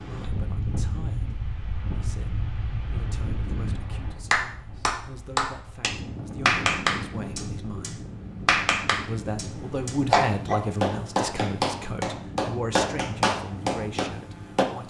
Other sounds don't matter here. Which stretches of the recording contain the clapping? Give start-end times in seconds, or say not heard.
4.3-14.7.